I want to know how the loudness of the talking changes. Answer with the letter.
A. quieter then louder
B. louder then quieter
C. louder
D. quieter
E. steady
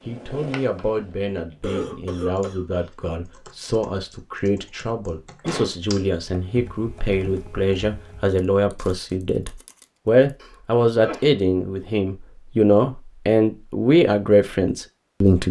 C.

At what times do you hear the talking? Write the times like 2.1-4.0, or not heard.
0.1-15.4.